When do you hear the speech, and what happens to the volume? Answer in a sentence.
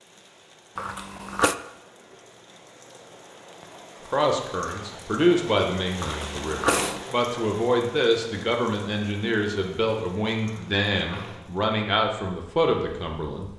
You can hear the speech from 4.1 to 13.5 s, at a steady volume.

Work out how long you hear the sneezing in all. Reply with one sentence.
The sneezing can be heard for 3 seconds in total.